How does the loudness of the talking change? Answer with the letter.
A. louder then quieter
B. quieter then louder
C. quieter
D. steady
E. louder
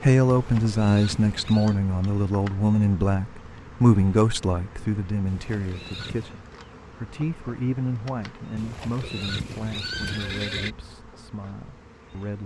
C.